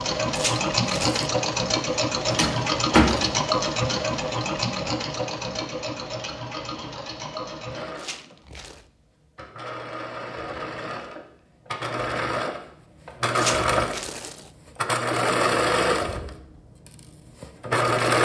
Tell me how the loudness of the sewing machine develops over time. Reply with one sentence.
The loudness of the sewing machine goes down, then up.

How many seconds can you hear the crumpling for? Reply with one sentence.
You can hear the crumpling for 3 seconds altogether.